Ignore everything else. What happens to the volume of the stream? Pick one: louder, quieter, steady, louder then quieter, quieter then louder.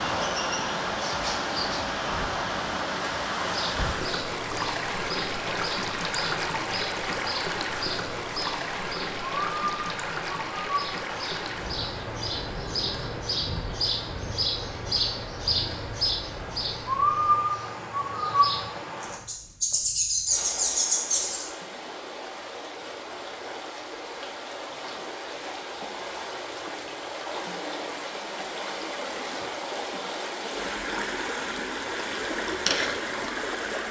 quieter then louder.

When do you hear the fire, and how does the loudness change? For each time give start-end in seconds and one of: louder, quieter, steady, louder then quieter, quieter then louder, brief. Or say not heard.
not heard.